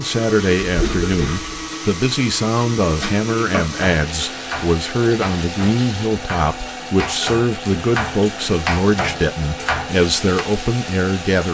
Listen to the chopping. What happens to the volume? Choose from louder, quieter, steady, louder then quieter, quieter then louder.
quieter then louder.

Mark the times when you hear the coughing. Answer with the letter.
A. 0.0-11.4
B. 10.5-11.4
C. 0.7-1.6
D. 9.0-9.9
C.